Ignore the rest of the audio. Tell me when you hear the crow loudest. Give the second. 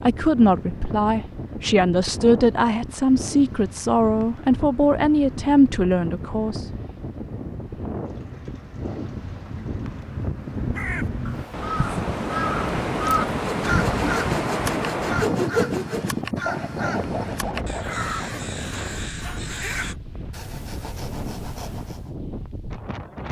13 s.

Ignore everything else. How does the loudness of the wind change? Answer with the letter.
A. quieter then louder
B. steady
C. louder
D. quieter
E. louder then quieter
E.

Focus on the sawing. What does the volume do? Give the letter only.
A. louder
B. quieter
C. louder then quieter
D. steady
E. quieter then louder
B.